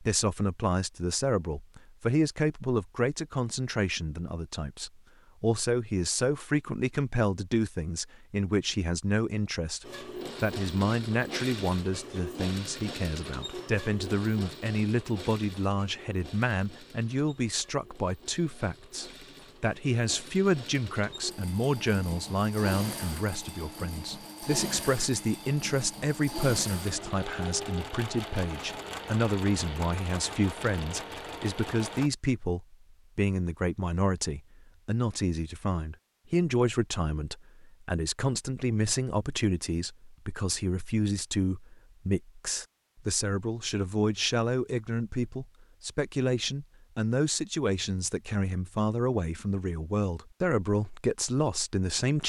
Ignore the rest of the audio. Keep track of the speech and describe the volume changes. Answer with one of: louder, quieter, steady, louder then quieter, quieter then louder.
steady.